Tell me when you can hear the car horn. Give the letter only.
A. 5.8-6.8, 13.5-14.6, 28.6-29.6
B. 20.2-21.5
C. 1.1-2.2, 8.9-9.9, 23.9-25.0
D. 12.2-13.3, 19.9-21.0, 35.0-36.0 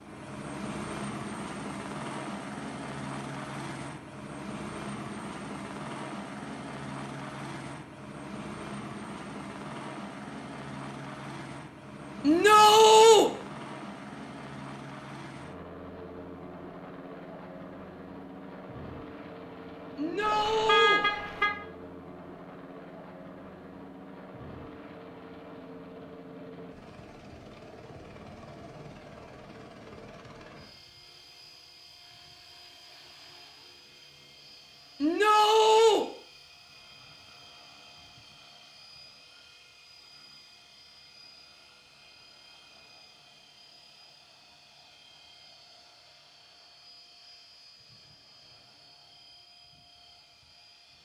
B.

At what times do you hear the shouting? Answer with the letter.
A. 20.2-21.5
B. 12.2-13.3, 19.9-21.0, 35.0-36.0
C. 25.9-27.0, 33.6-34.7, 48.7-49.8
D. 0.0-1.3
B.